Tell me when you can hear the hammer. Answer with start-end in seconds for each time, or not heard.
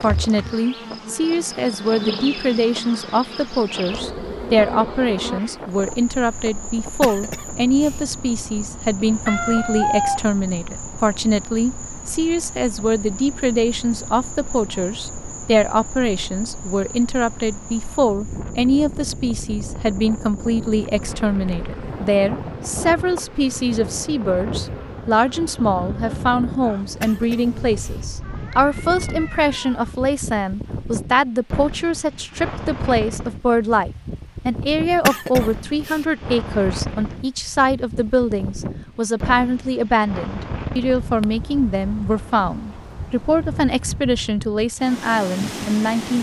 not heard.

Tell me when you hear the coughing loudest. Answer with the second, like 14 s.
35 s.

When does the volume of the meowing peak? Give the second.
10 s.